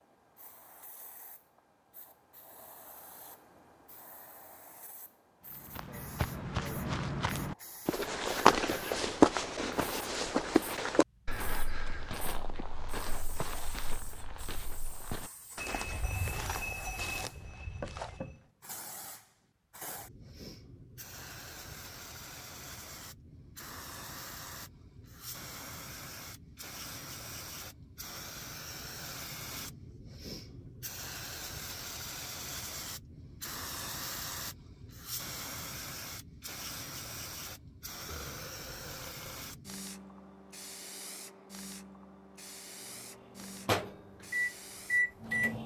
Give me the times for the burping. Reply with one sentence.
The burping can be heard from 38.0 to 39.5 s.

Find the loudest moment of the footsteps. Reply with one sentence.
The loudest moment of the footsteps is at 9 seconds.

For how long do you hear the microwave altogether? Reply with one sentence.
The microwave can be heard for 3 seconds in total.